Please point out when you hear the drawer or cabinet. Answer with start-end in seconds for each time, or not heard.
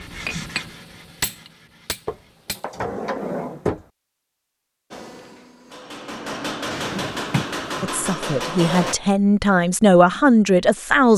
2.0-3.9, 6.7-7.9.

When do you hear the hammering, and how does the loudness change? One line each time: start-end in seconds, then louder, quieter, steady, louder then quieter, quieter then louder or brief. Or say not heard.
0.0-2.6 brief
4.9-8.9 louder.